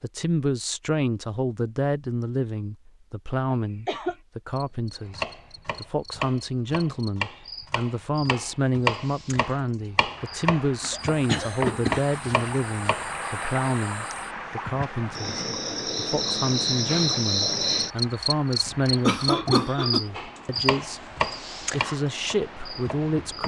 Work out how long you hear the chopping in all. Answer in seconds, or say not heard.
11 s.